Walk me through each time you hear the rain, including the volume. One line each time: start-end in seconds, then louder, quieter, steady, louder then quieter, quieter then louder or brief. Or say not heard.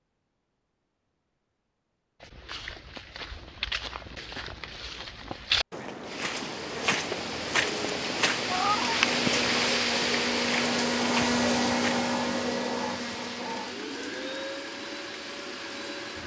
6.0-16.2 louder then quieter.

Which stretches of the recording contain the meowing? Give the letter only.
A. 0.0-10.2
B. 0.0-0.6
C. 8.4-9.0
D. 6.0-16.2
C.